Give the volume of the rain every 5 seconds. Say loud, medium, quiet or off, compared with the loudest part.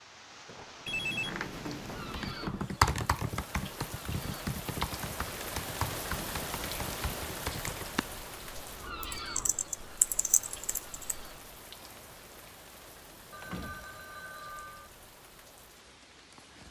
medium, loud, medium, quiet.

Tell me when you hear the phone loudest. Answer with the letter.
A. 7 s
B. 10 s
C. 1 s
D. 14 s
C.